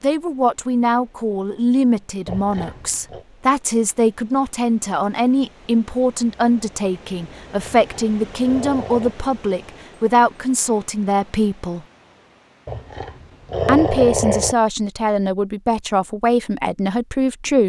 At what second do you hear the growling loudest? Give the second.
14 s.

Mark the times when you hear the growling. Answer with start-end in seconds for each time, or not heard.
2.2-3.2, 7.6-9.2, 12.7-14.6.